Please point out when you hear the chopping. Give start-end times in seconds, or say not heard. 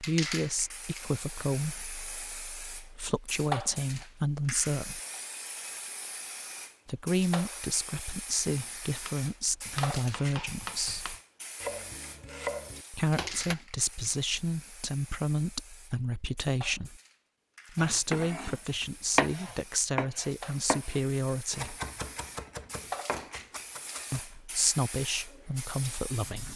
8.6-13.6, 17.8-24.2.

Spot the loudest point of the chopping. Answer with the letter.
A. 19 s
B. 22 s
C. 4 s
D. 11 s
A.